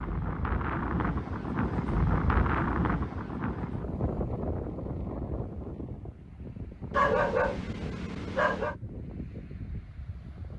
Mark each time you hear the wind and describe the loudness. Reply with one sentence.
The wind can be heard from 0.0 to 10.5 s, getting quieter.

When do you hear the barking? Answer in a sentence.
The barking can be heard from 6.9 to 8.8 s.